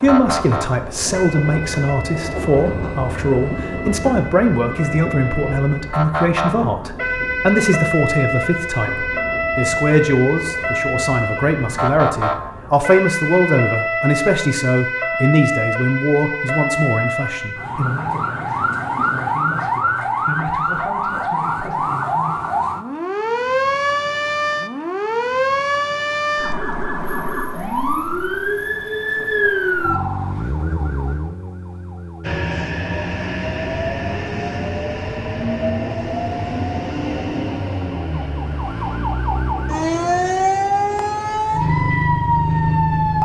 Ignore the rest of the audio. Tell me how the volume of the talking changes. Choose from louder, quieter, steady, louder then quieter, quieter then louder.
quieter.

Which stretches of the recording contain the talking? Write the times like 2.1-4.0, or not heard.
0.0-22.4.